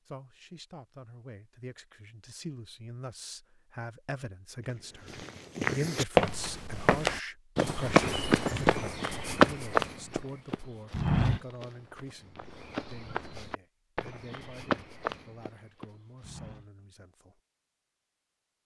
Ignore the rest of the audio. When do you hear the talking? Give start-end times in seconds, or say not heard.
0.1-17.4.